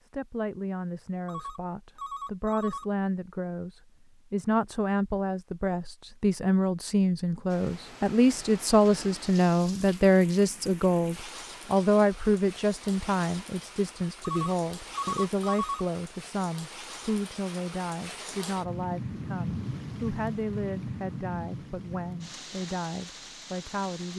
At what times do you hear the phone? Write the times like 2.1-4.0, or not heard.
1.2-2.9, 14.2-15.8.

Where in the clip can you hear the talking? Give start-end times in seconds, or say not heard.
0.0-24.1.